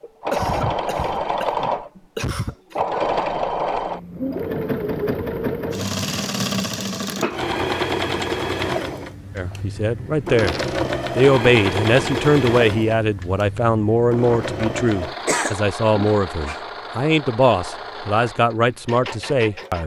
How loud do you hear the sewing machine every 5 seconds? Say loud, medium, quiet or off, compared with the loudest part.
loud, loud, loud, medium.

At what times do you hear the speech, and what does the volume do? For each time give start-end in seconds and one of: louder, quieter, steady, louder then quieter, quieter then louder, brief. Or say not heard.
9.3-10.6 brief
11.2-19.8 steady.